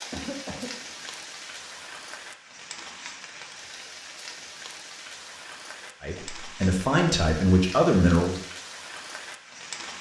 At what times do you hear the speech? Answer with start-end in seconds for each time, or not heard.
6.0-8.4.